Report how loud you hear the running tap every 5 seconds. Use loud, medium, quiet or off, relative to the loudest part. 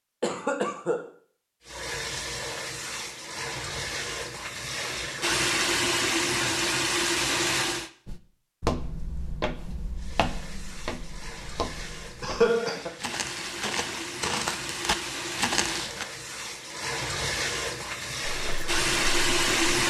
medium, loud, quiet, loud.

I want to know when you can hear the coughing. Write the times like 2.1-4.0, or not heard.
0.2-1.0, 12.2-12.9.